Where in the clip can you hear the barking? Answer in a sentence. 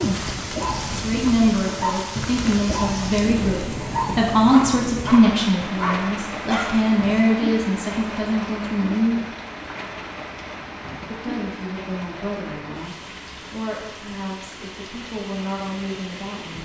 The barking can be heard from 0.0 to 7.3 s.